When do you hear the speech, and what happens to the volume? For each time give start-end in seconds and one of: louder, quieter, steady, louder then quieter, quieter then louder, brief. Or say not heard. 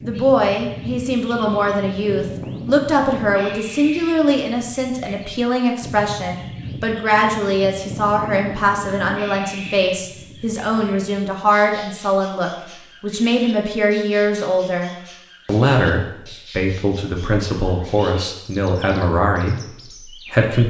0.0-20.6 steady.